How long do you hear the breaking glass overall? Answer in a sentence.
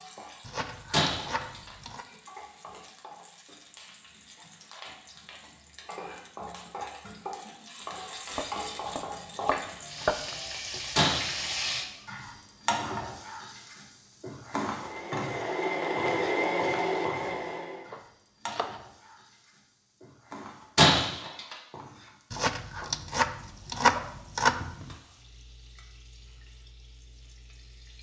You can hear the breaking glass for 2 seconds altogether.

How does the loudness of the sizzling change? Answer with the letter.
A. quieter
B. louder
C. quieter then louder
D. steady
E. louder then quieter
E.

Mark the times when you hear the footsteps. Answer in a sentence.
You can't hear the footsteps here.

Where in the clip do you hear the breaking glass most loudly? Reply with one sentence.
The volume of the breaking glass peaks at 21 seconds.